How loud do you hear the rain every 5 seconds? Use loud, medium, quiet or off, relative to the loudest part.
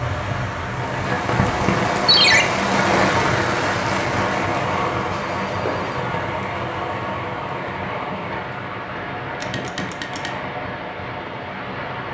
loud, medium, medium.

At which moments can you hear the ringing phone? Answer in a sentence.
You can hear the ringing phone from 2.0 to 2.5 s, from 5.1 to 6.0 s and from 9.4 to 10.3 s.